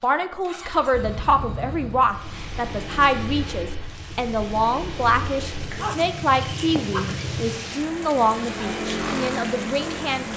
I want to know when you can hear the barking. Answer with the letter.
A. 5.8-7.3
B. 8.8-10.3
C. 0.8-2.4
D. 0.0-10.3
A.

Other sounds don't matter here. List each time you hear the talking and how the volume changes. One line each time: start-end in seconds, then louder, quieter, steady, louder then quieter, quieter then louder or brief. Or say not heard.
0.0-10.3 steady.